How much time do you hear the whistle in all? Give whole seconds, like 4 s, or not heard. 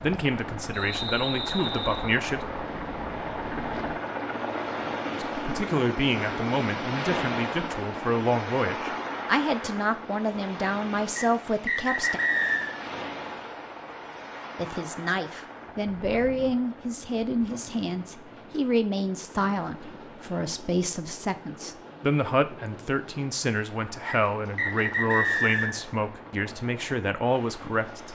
5 s.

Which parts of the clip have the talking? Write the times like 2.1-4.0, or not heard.
0.0-2.4, 5.3-12.2, 14.6-28.0.